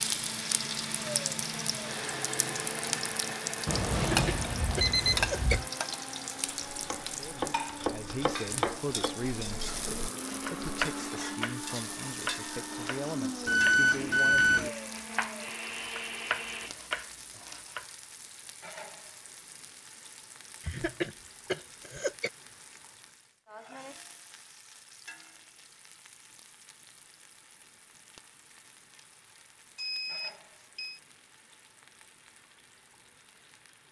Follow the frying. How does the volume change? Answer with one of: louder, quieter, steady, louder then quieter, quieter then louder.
quieter.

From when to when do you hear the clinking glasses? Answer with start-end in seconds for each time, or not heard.
not heard.